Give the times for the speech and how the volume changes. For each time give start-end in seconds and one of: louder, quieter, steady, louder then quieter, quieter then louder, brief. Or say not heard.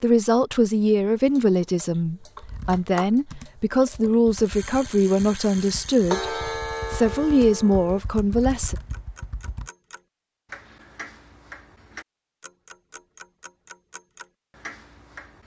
0.0-8.8 steady.